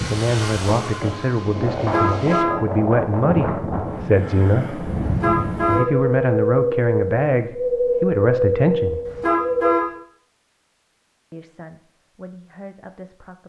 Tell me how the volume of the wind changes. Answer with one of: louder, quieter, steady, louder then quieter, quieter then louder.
louder.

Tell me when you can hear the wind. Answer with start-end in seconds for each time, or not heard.
0.0-9.8.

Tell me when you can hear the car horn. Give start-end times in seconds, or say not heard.
1.8-2.5, 5.0-5.8, 9.1-9.8.